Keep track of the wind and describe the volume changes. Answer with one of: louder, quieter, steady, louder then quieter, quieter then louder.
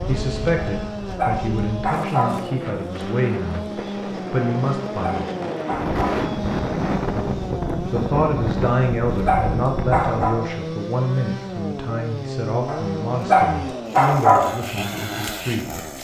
louder.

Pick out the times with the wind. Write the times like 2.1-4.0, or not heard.
0.0-10.2.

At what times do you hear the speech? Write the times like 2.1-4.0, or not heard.
0.1-5.2, 7.9-15.7.